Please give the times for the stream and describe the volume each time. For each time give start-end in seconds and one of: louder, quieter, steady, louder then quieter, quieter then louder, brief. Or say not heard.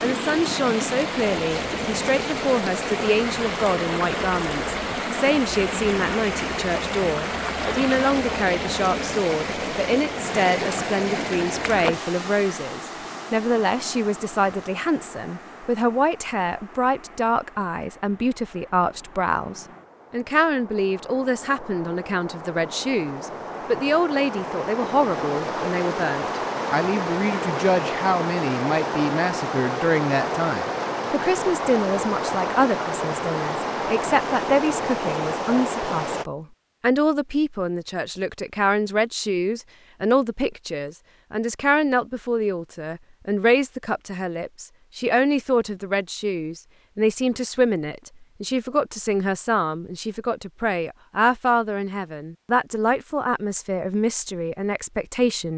0.0-36.2 quieter then louder.